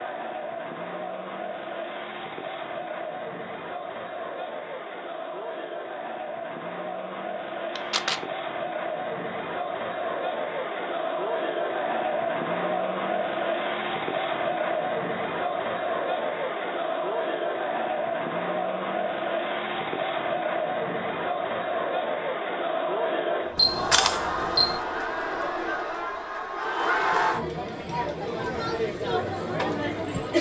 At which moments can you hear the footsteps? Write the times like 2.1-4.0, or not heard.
not heard.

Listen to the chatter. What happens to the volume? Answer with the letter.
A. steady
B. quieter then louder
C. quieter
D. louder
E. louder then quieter
D.